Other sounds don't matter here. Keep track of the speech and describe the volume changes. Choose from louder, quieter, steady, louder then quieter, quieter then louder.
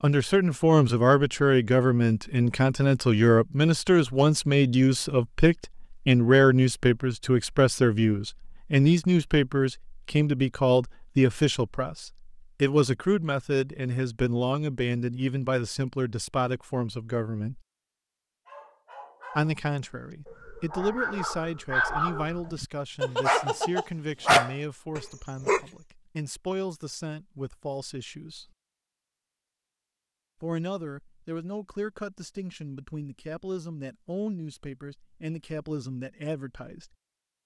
quieter.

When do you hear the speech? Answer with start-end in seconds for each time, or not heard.
0.0-17.6, 19.4-28.5, 30.4-36.9.